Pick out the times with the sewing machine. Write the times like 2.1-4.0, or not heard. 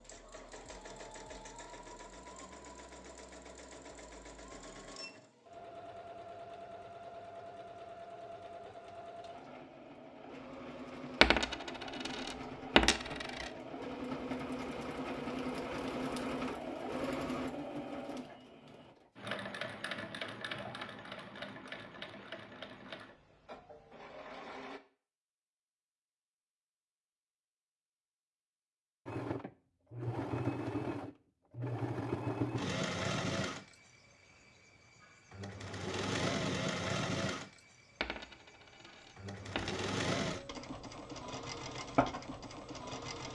0.0-24.8, 29.1-43.3.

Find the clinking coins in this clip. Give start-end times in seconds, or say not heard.
11.2-13.5, 38.0-40.5.